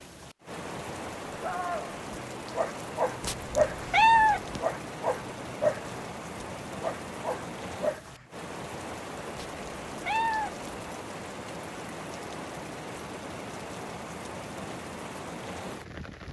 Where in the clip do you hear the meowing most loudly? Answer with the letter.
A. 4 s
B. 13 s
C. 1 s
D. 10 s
A.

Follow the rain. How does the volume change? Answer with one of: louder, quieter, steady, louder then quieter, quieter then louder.
steady.